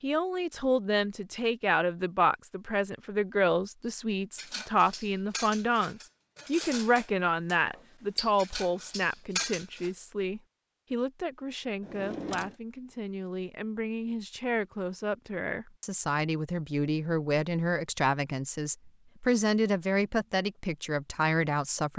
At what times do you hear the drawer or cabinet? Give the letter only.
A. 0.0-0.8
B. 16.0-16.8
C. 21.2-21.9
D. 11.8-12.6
D.